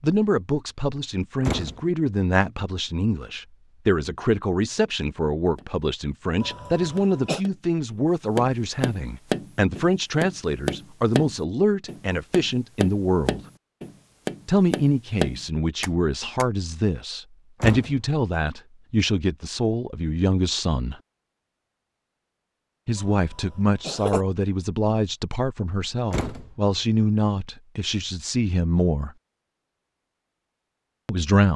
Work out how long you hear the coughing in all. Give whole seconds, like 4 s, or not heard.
2 s.